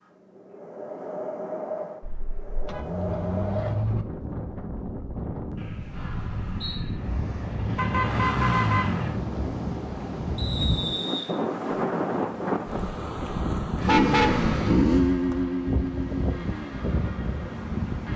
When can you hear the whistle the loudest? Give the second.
11 s.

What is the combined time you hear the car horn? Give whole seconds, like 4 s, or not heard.
4 s.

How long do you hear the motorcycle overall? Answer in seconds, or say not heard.
8 s.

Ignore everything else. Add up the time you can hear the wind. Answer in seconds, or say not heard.
18 s.